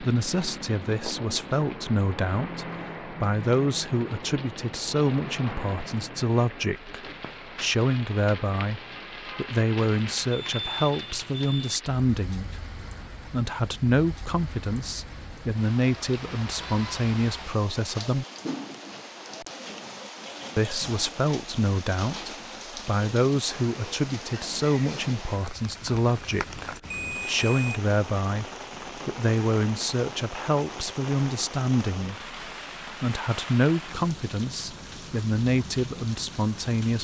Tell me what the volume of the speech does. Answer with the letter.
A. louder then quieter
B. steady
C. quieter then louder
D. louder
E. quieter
B.